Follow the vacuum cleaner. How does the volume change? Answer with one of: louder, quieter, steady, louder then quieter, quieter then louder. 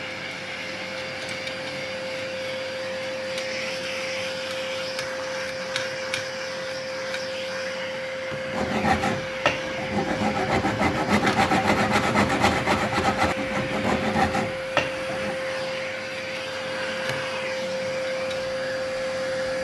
steady.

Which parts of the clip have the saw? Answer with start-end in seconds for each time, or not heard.
8.4-15.4.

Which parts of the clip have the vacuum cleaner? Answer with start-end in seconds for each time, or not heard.
0.0-19.5.